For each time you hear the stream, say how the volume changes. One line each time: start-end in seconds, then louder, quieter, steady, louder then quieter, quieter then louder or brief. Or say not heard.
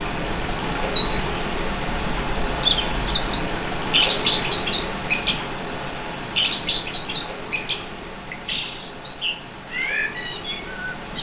0.0-11.1 quieter.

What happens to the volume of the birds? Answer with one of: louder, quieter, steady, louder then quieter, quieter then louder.
quieter.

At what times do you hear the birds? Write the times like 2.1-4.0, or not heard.
0.0-5.5, 6.3-11.1.